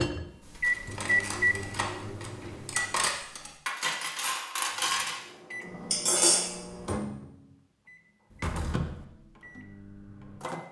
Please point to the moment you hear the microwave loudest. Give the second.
1 s.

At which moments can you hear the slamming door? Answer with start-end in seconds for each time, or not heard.
2.4-2.9, 8.3-9.1.